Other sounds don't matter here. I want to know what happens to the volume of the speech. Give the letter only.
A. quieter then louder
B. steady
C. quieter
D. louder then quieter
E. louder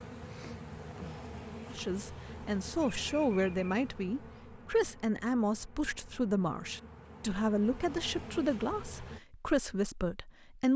B.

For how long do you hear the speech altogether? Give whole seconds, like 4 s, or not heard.
9 s.